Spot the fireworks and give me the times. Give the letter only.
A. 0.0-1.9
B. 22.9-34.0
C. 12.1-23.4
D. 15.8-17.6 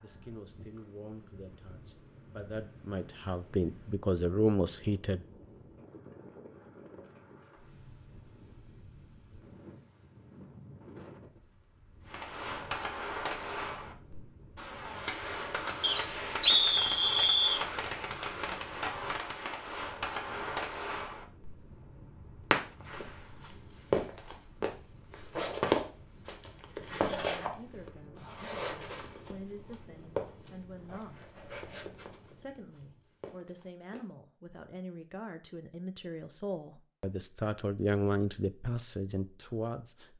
C.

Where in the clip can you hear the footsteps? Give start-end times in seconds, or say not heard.
22.9-34.0.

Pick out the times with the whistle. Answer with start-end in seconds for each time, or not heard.
15.8-17.6.